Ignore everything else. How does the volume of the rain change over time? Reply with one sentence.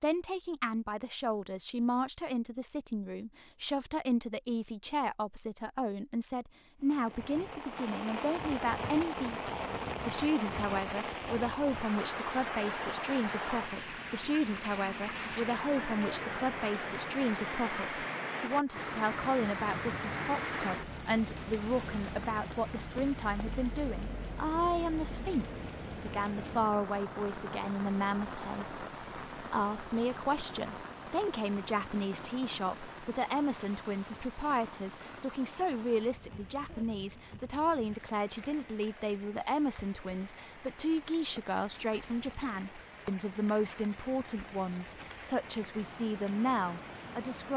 The volume of the rain goes down.